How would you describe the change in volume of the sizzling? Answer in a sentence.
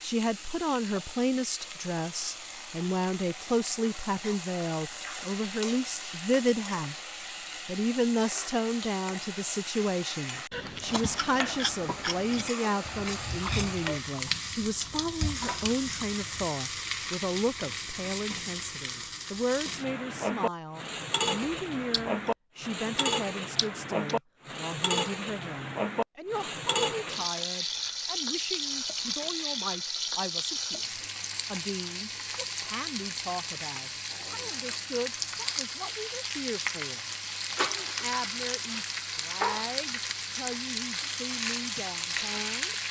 The loudness of the sizzling goes up.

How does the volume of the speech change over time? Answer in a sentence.
The loudness of the speech goes down.